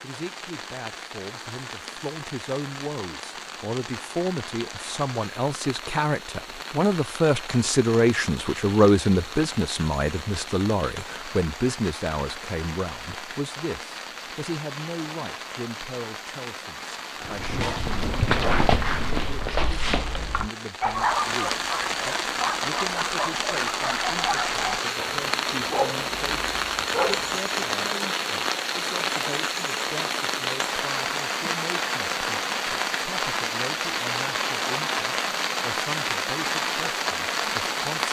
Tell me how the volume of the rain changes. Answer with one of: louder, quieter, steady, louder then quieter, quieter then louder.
louder.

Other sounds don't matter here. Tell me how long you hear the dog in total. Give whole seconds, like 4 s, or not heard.
11 s.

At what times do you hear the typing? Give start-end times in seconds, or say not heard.
not heard.